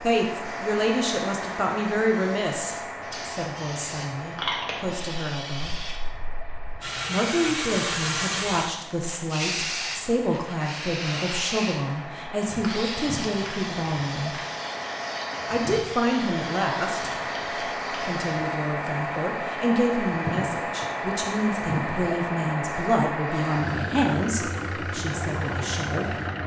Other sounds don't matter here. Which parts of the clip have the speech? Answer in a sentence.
You can hear the speech from 0.0 to 5.8 s, from 7.0 to 14.3 s, from 15.5 to 17.2 s and from 18.0 to 26.1 s.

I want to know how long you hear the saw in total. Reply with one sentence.
The saw can't be heard in this clip.